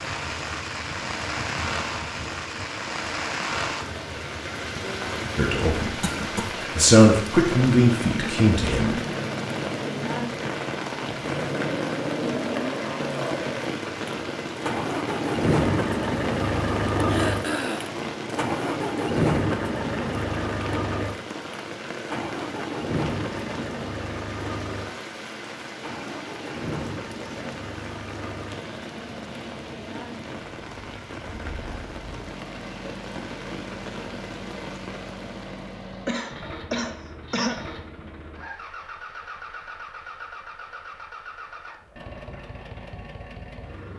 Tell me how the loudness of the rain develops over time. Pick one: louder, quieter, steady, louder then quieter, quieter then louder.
quieter.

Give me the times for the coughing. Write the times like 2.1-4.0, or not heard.
6.0-6.5, 17.1-17.9, 36.0-37.5.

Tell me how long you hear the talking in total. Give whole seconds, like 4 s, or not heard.
3 s.